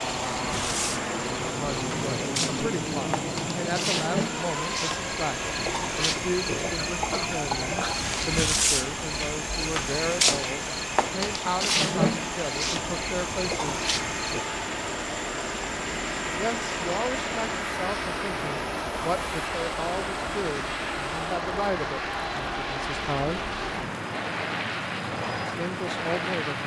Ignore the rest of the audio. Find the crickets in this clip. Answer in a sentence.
The crickets can be heard from 0.0 to 14.5 s.